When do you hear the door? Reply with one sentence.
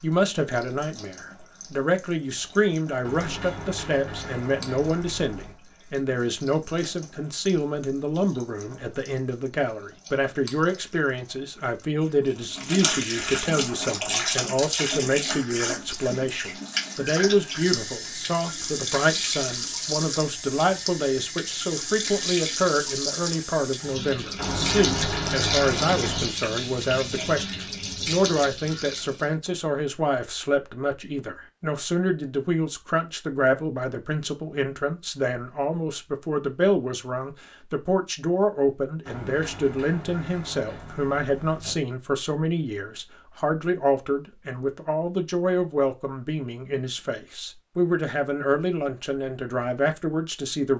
The door can be heard from 3.0 to 5.5 s, from 24.4 to 26.4 s and from 39.0 to 41.8 s.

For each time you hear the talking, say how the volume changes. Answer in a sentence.
You can hear the talking from 0.0 to 50.7 s, at a steady volume.